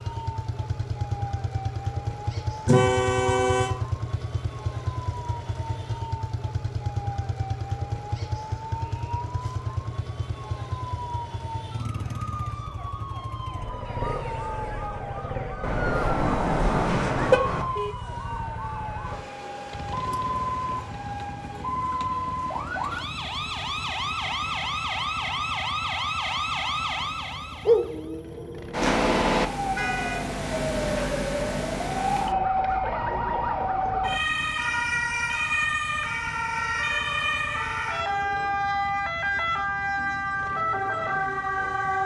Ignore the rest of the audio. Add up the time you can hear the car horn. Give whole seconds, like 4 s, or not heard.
4 s.